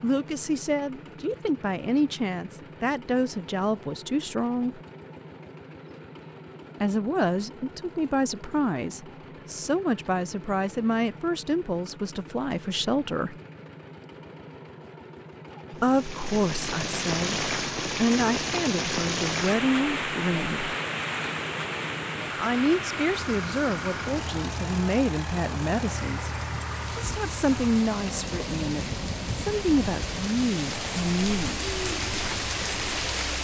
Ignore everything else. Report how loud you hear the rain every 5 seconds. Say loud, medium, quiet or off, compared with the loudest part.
off, off, off, loud, loud, medium, loud.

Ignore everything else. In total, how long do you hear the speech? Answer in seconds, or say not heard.
25 s.